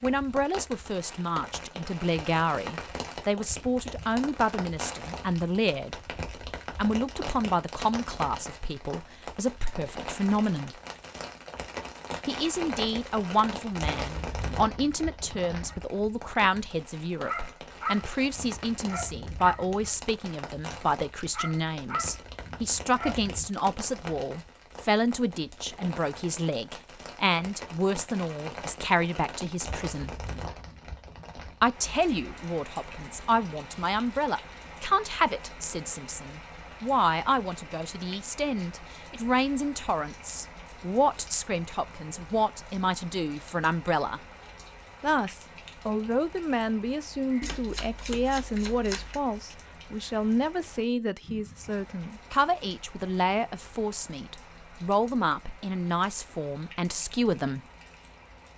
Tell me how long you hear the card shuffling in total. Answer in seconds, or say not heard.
2 s.